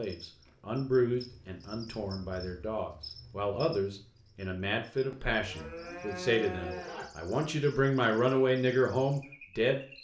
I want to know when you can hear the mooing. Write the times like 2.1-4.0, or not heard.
5.1-7.1.